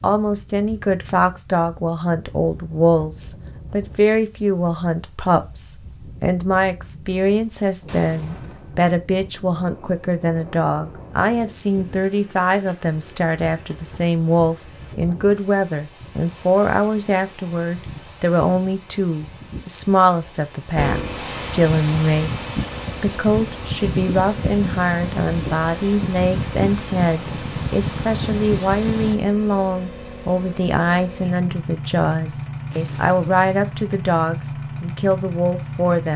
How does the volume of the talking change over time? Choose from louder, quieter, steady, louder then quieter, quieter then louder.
steady.